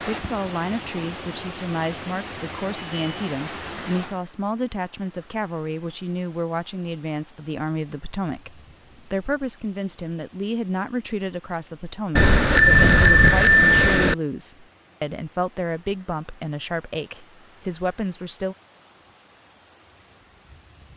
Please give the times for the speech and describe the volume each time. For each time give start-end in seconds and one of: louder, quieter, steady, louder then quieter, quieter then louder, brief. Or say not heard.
0.0-18.6 steady.